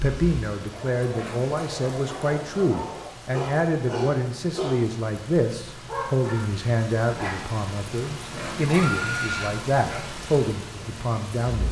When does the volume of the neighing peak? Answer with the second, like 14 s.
9 s.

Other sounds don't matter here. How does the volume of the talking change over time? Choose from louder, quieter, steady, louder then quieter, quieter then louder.
steady.